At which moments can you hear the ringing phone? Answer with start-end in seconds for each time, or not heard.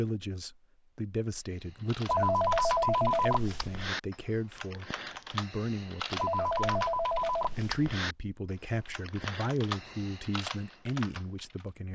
2.0-3.9, 6.2-7.8.